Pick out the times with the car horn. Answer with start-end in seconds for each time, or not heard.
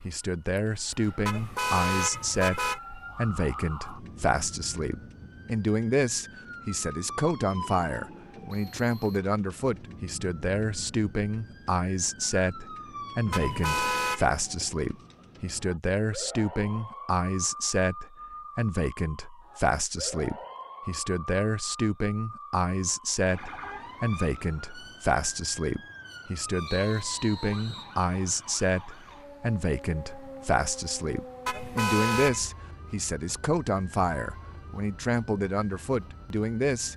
1.2-2.8, 13.3-14.3, 31.4-32.5.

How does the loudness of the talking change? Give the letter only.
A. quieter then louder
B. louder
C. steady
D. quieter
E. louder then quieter
C.